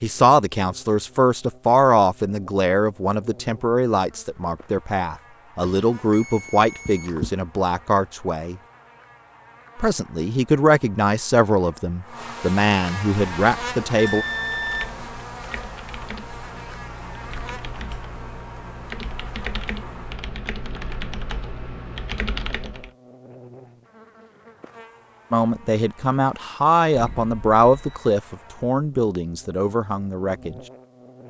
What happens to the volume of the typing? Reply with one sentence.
The volume of the typing goes up.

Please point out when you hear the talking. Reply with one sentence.
The talking can be heard from 0.0 to 8.6 s, from 9.8 to 14.2 s and from 25.3 to 30.6 s.